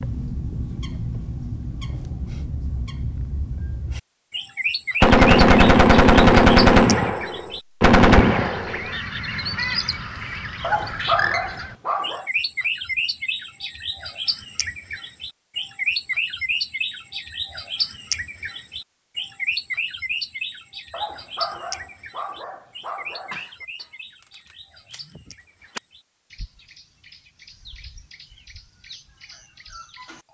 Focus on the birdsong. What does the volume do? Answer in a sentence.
The loudness of the birdsong goes down.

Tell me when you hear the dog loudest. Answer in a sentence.
The volume of the dog peaks at 11 seconds.